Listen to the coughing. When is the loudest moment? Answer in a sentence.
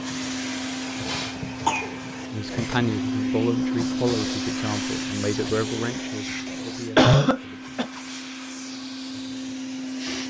The loudest moment of the coughing is at 7 seconds.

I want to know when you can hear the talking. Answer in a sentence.
The talking can be heard from 2.3 to 7.6 s.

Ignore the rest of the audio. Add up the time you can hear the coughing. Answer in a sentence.
The coughing can be heard for 2 seconds in total.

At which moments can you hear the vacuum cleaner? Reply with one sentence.
The vacuum cleaner can be heard from 0.0 to 10.2 s.